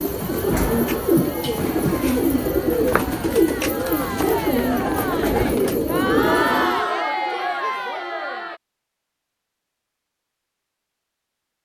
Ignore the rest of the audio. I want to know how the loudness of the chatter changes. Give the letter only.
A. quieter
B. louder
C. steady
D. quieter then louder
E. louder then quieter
B.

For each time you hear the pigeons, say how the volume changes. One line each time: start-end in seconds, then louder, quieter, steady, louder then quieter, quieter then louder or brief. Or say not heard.
0.0-6.8 steady.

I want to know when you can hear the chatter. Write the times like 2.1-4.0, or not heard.
0.2-8.6.